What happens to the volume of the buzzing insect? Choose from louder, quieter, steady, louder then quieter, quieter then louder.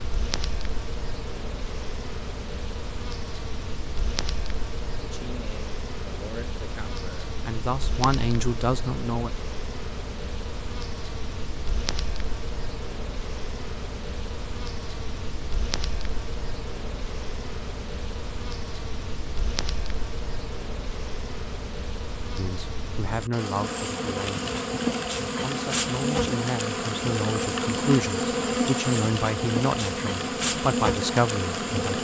louder.